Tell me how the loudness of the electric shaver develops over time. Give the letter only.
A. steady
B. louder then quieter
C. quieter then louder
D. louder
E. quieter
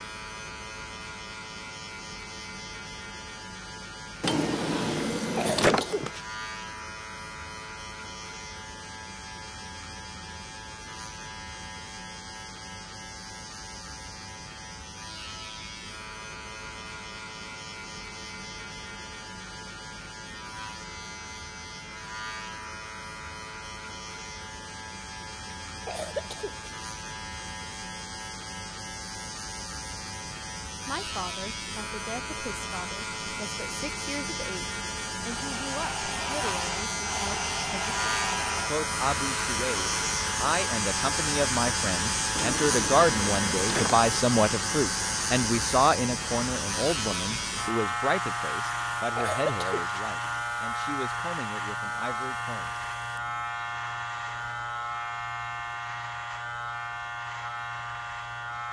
D.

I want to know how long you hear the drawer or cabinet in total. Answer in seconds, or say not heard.
4 s.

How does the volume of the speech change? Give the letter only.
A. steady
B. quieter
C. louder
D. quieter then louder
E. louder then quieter
E.